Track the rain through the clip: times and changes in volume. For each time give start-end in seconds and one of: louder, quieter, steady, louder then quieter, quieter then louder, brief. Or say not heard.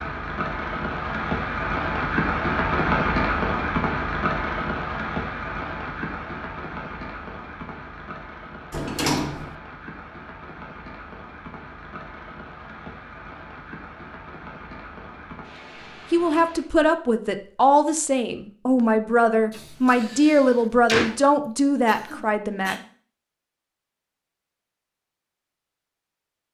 0.0-16.7 quieter.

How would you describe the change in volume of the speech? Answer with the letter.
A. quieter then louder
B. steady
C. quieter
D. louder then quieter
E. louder
B.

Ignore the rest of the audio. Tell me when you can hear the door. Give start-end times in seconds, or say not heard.
8.7-9.6, 19.5-21.2.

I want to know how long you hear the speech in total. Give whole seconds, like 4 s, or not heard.
7 s.